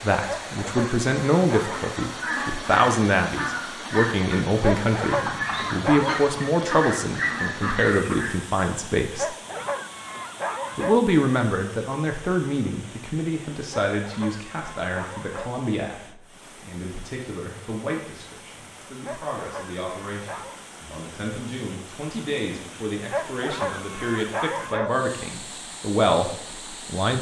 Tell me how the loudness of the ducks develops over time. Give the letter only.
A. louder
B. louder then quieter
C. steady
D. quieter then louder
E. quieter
C.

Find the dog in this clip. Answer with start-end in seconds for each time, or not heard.
0.2-1.9, 4.6-6.2, 9.2-11.0, 13.9-15.5, 19.1-20.6, 23.1-24.9.